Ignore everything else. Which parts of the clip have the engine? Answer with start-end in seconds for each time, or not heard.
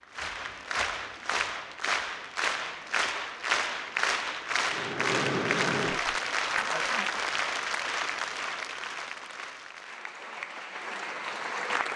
4.7-7.2.